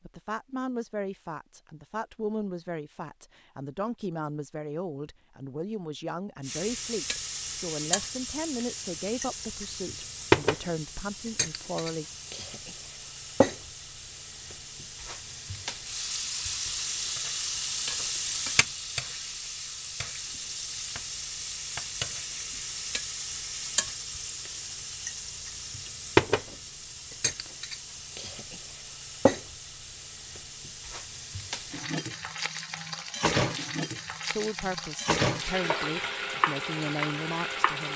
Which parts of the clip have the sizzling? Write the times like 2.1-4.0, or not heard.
6.4-37.9.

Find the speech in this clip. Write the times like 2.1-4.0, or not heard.
0.1-12.1, 34.2-37.9.